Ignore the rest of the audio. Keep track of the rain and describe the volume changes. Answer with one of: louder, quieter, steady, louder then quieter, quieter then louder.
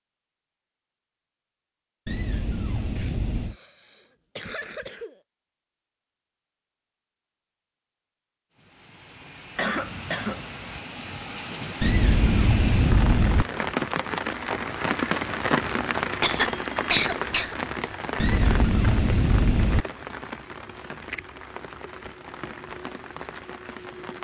louder then quieter.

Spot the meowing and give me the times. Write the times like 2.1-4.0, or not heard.
2.0-3.5, 11.8-13.4, 18.1-19.9.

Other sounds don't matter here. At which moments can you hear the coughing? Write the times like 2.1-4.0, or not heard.
3.0-5.2, 9.6-10.8, 16.2-17.6.